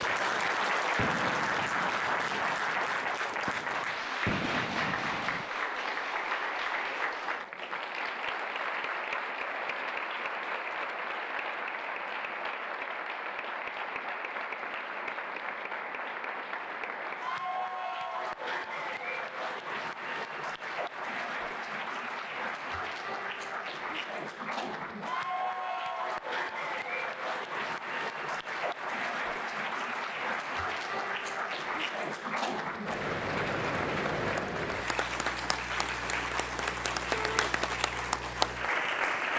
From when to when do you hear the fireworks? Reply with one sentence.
The fireworks can be heard from 0.0 to 5.5 s.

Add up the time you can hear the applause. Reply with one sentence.
The applause can be heard for 39 seconds in total.